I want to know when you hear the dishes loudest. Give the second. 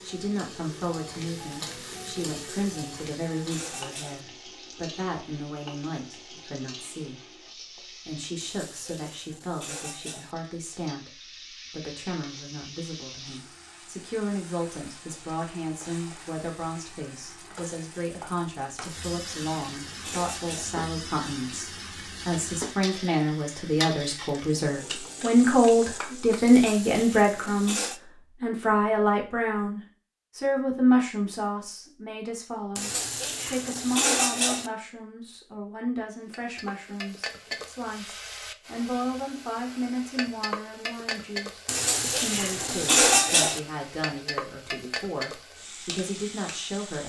43 s.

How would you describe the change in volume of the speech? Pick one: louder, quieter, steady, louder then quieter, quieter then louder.
louder then quieter.